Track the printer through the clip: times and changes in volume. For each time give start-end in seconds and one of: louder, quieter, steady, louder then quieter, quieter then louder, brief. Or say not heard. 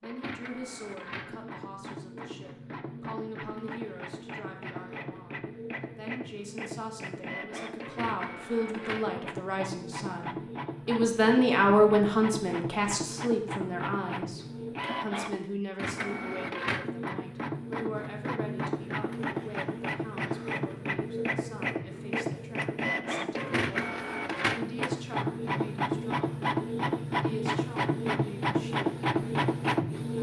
0.0-30.1 louder.